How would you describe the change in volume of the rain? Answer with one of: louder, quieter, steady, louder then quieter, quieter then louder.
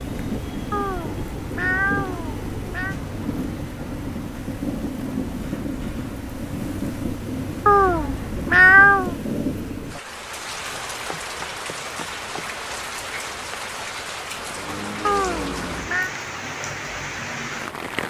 steady.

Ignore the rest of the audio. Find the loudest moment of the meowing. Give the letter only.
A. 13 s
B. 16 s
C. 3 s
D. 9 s
D.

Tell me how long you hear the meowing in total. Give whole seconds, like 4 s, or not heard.
5 s.